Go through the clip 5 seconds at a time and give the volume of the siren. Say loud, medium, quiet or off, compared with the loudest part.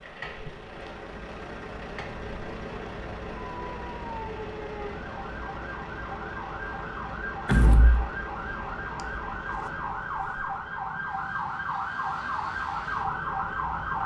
medium, medium, loud.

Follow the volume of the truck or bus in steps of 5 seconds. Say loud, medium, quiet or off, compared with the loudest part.
loud, loud, medium.